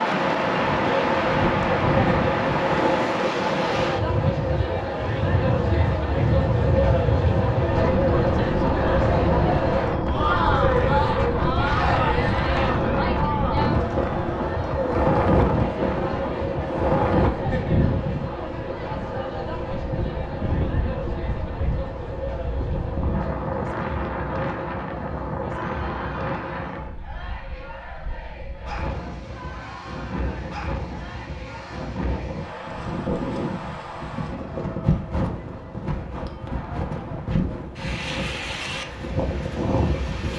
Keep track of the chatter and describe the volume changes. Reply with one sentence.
The volume of the chatter goes down.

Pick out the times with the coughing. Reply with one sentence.
The coughing can't be heard in this clip.